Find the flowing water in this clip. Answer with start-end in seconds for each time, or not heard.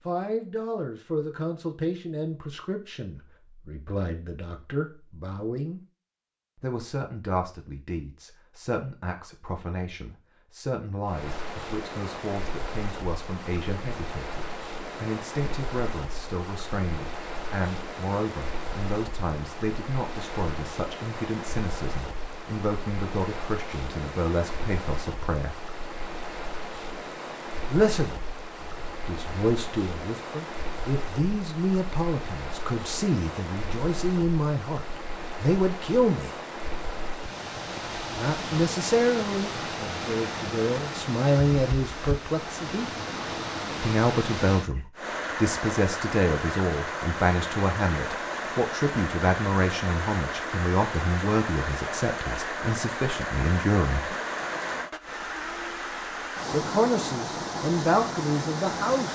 11.1-59.0.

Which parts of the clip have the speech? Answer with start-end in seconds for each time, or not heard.
0.1-5.8, 6.5-25.7, 27.6-36.4, 38.1-42.9, 43.8-54.1, 56.5-59.0.